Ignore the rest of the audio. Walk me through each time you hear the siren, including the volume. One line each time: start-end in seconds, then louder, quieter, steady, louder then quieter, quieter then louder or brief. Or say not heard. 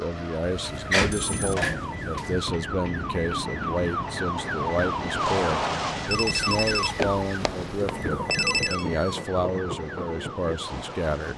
0.0-11.3 louder then quieter.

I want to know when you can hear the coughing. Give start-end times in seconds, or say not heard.
not heard.